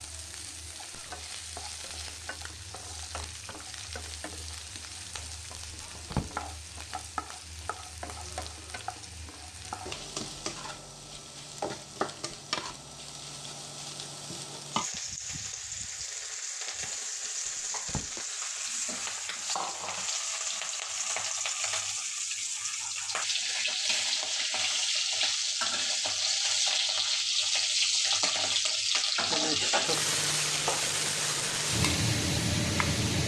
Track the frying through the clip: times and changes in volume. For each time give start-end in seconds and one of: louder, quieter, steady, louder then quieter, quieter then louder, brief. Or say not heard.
0.0-33.2 louder.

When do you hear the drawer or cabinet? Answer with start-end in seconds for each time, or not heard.
5.7-6.3, 17.4-18.1.